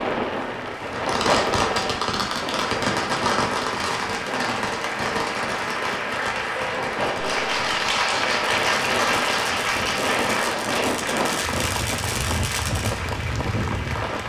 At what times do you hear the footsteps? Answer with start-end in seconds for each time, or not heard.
not heard.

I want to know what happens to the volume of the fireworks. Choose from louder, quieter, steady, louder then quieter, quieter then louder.
quieter.